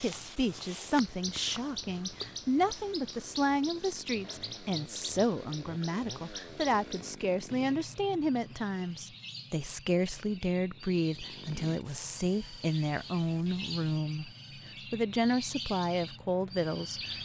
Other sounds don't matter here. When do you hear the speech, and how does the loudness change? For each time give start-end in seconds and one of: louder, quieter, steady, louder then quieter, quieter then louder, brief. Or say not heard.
0.0-14.3 steady
14.9-17.2 brief.